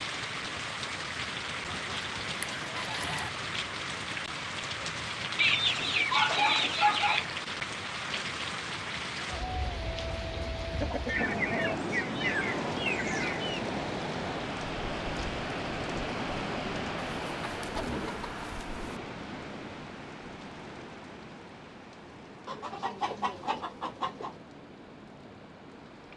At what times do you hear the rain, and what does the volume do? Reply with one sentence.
The rain can be heard from 0.0 to 26.1 s, getting quieter.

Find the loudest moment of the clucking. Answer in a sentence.
The loudest moment of the clucking is at 6 seconds.